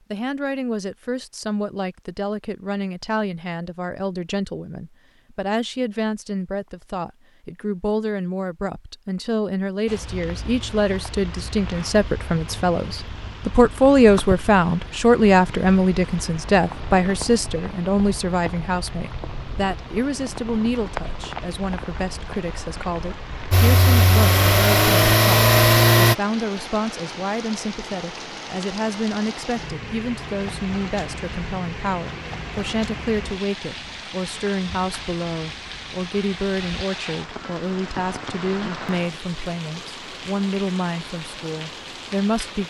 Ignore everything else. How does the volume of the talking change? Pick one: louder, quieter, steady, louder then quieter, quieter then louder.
louder then quieter.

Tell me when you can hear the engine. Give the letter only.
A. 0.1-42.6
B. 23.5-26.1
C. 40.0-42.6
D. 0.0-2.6
B.